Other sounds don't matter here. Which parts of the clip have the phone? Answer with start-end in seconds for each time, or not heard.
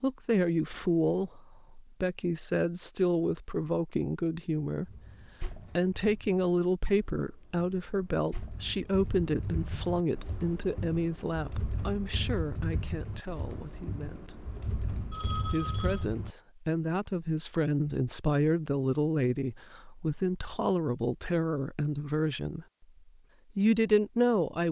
15.1-16.1.